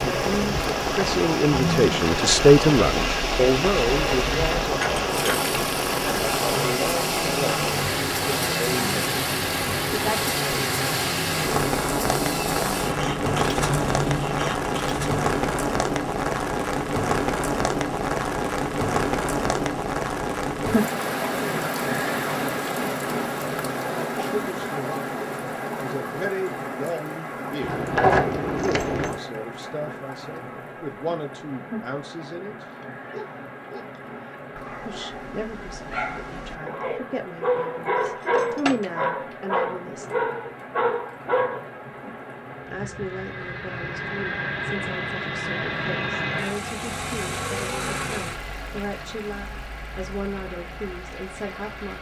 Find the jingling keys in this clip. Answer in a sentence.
The jingling keys can be heard from 4.8 to 5.5 s, from 27.6 to 29.2 s and from 38.0 to 39.0 s.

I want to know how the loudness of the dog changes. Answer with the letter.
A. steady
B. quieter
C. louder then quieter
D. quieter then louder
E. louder
E.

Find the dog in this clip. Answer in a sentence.
The dog can be heard from 32.6 to 41.6 s.